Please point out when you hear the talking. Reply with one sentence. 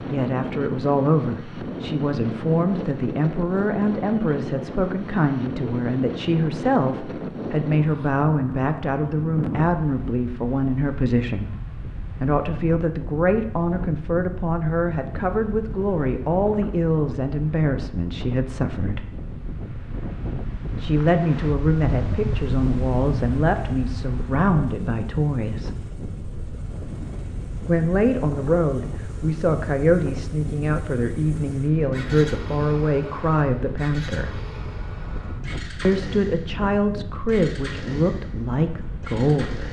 The talking can be heard from 0.1 to 19.1 s, from 20.8 to 25.8 s, from 27.6 to 34.4 s and from 35.8 to 39.6 s.